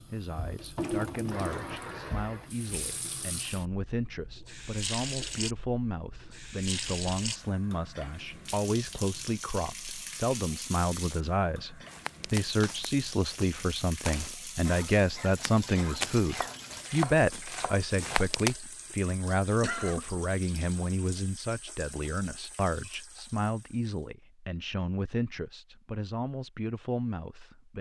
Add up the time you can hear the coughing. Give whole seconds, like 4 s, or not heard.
4 s.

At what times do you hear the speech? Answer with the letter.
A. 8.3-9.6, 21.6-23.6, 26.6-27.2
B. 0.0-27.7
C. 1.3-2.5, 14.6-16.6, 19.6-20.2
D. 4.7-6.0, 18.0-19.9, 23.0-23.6
B.